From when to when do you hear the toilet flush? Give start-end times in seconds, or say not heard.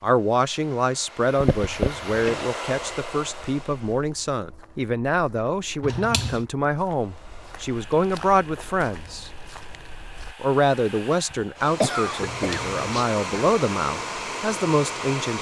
1.4-2.5, 5.8-6.5, 12.2-13.1.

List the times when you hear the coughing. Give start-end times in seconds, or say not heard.
11.3-12.7.